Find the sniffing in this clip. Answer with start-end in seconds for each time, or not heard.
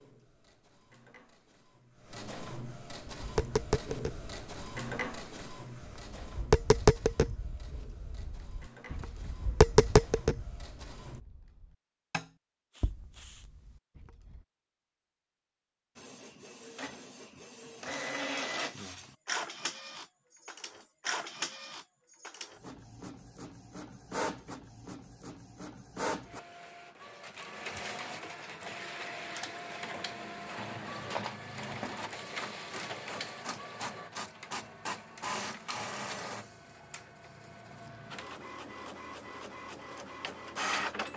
12.7-13.5.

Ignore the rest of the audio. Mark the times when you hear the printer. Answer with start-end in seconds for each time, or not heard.
0.0-11.2, 15.9-41.1.